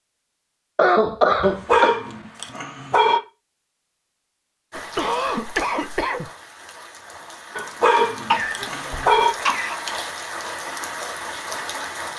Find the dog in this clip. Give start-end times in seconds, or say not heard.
1.4-3.2, 7.5-9.3.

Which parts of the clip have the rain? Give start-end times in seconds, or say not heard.
4.7-12.1.